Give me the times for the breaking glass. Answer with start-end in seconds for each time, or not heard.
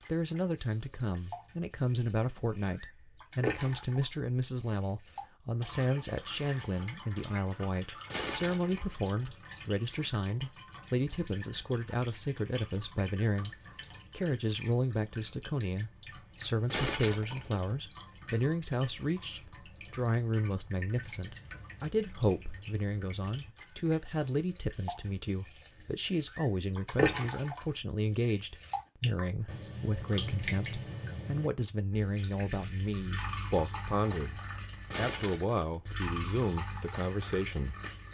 8.1-8.8, 16.7-17.8, 34.9-36.0.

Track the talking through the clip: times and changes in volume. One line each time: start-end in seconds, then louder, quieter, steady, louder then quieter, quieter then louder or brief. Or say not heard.
0.1-34.4 steady
35.0-37.8 brief.